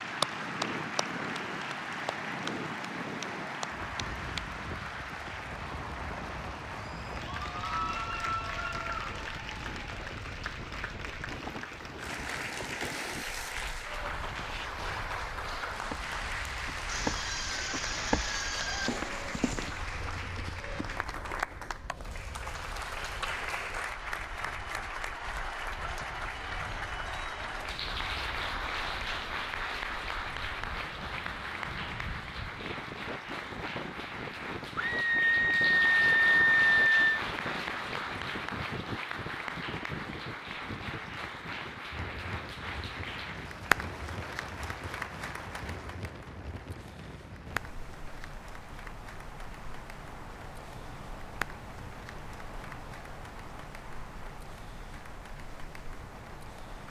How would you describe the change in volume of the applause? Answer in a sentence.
The volume of the applause goes down.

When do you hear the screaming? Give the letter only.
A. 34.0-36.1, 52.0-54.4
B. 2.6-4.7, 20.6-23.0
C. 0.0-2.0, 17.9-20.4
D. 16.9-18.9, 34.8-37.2
D.